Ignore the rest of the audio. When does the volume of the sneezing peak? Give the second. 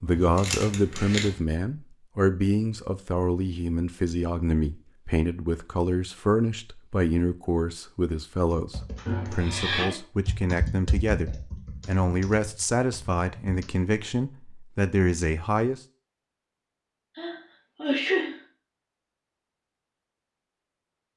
18 s.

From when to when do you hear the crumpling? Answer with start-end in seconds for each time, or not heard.
0.1-1.4.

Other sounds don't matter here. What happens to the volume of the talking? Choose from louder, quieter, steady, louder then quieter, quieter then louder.
steady.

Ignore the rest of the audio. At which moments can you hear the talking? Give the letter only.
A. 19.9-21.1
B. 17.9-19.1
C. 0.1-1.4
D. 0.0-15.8
D.